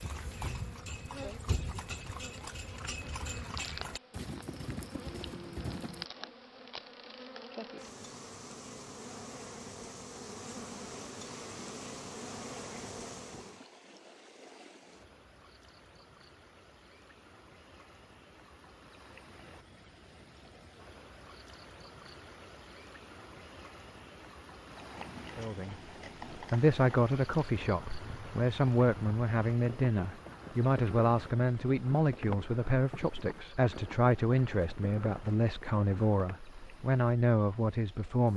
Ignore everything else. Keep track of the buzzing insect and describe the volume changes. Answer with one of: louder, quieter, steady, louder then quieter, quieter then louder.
louder.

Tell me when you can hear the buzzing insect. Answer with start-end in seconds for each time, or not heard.
0.0-13.7.